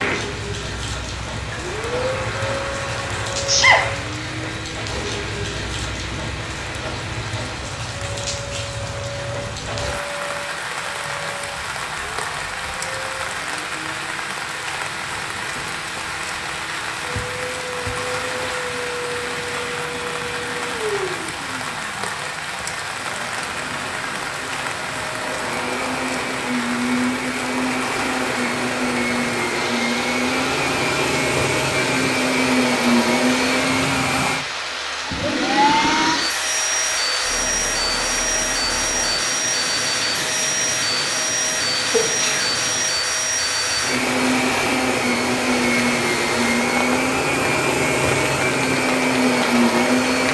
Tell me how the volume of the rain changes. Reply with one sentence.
The loudness of the rain stays about the same.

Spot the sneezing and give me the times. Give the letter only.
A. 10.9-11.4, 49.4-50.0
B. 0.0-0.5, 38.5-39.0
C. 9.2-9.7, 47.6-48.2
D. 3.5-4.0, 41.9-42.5
D.